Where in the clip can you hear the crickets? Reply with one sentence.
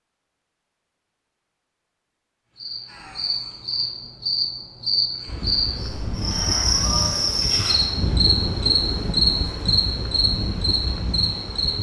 The crickets can be heard from 2.5 to 11.7 s.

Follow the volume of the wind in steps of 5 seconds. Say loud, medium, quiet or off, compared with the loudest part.
off, loud, loud.